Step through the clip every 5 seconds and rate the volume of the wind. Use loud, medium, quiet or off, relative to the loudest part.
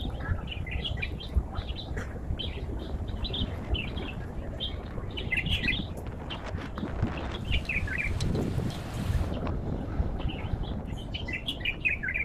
quiet, loud, medium.